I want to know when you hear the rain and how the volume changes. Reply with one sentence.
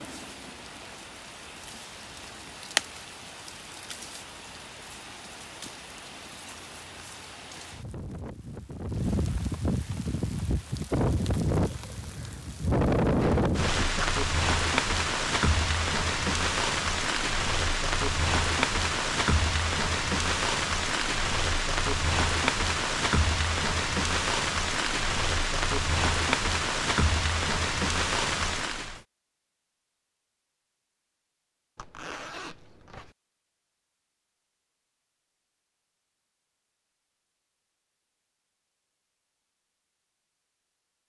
The rain can be heard from 0.0 to 29.0 s, getting louder.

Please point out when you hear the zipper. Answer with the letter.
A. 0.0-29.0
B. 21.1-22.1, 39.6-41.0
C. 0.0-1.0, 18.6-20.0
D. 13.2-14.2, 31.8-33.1
D.